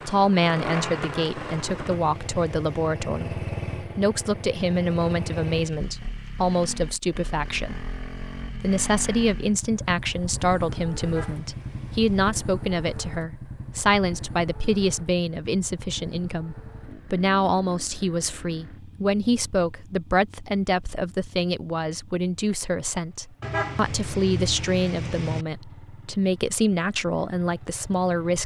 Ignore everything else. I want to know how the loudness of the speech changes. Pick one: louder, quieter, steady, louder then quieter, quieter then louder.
steady.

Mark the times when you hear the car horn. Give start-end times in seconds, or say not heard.
1.0-3.0, 11.0-12.3, 23.4-25.4.